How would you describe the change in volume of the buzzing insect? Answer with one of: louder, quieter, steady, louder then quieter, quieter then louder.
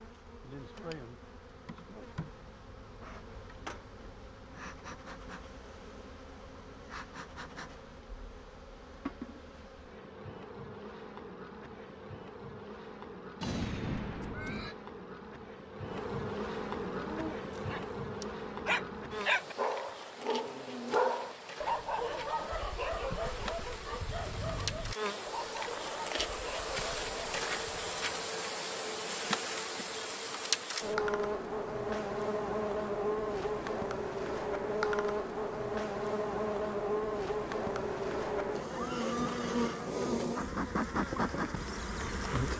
louder.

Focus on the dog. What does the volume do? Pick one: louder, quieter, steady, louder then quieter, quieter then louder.
quieter.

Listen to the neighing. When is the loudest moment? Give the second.
14 s.